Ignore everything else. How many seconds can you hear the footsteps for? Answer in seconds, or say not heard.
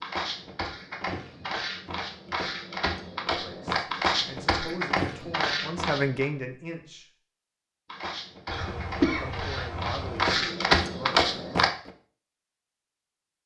10 s.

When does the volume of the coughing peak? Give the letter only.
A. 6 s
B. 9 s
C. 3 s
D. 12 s
B.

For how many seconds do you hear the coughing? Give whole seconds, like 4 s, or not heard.
2 s.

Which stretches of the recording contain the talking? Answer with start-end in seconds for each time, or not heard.
3.3-7.0, 9.0-11.3.